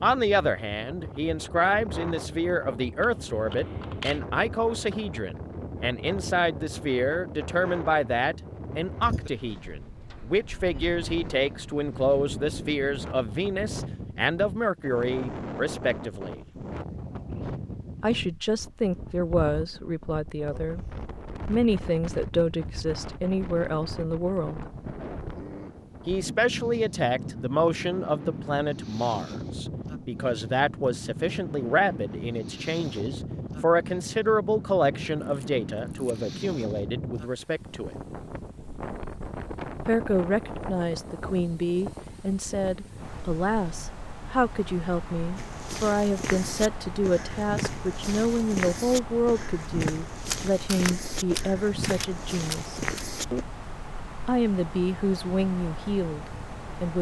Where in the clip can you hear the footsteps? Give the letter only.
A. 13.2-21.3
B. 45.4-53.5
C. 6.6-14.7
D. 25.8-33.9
B.